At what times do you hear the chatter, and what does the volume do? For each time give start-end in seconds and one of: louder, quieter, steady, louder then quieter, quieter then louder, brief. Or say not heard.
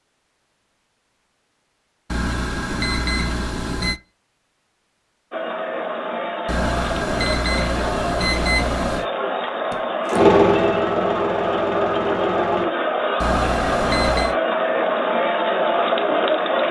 5.3-16.6 louder.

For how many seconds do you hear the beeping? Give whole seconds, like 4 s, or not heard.
6 s.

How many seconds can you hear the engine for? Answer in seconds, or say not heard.
3 s.